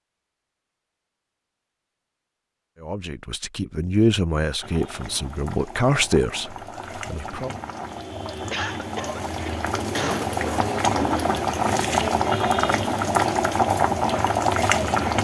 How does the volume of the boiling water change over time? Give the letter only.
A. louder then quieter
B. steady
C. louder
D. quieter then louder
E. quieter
C.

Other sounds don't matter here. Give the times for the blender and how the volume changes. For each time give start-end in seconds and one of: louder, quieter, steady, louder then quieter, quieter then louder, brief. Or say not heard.
not heard.